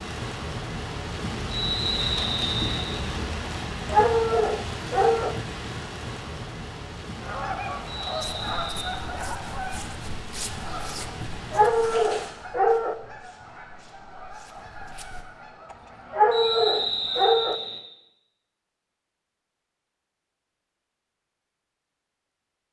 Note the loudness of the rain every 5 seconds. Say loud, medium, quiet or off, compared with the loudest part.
loud, medium, medium, off, off.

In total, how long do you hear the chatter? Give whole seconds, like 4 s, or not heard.
not heard.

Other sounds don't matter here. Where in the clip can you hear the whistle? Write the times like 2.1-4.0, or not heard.
1.5-3.0, 7.8-9.0, 16.3-17.8.